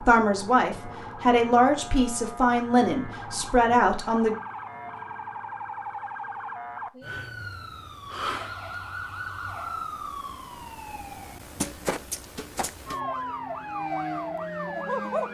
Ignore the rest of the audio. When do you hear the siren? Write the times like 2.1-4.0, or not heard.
0.0-15.2.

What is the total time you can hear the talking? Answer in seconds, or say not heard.
4 s.